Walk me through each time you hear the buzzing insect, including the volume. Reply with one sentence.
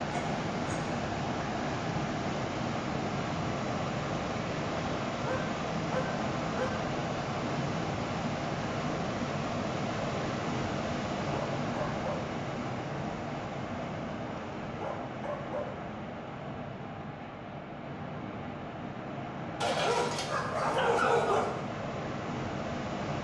The buzzing insect can't be heard in this clip.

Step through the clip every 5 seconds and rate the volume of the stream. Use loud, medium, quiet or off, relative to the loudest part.
loud, loud, loud, medium, loud.